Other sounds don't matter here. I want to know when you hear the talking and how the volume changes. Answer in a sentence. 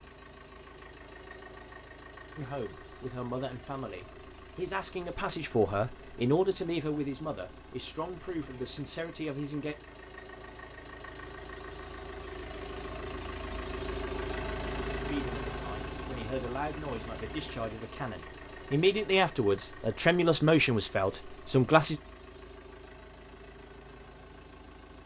You can hear the talking from 2.4 to 9.8 s, getting louder then quieter; and from 15.1 to 22.0 s, getting louder.